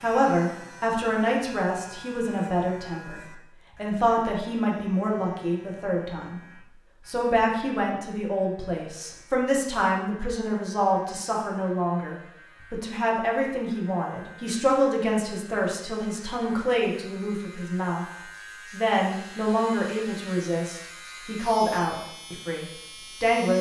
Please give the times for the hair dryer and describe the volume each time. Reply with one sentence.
You can't hear the hair dryer here.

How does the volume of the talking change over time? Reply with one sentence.
The volume of the talking stays about the same.